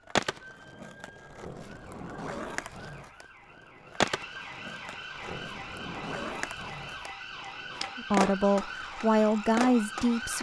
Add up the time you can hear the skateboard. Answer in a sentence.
The skateboard can be heard for 10 seconds in total.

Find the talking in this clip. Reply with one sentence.
The talking can be heard from 8.0 to 10.3 s.